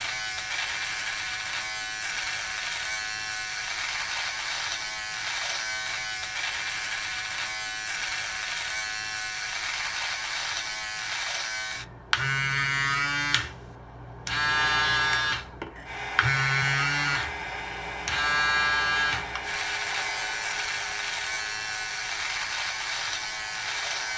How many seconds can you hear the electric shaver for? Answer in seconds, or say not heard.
24 s.